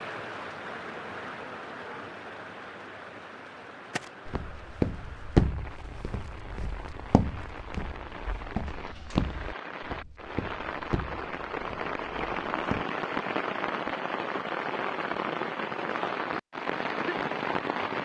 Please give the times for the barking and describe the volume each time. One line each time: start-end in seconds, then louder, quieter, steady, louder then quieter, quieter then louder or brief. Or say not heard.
not heard.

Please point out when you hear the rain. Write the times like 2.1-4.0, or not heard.
0.0-17.9.